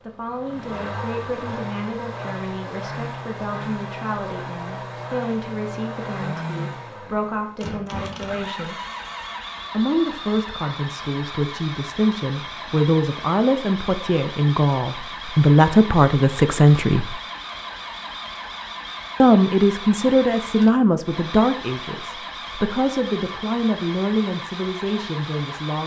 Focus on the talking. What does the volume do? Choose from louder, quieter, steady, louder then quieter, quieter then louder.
louder then quieter.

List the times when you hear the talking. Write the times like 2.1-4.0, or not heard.
0.0-8.8, 9.7-17.1, 19.2-25.8.